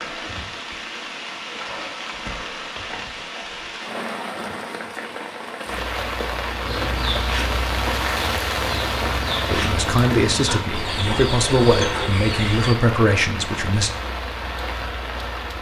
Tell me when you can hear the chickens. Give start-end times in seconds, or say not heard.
6.6-12.8.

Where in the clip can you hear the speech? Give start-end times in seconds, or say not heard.
9.4-13.9.